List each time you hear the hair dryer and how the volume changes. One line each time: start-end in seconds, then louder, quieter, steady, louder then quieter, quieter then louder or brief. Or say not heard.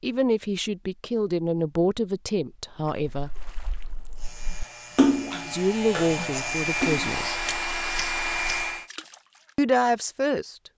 4.2-8.9 louder.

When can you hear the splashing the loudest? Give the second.
5 s.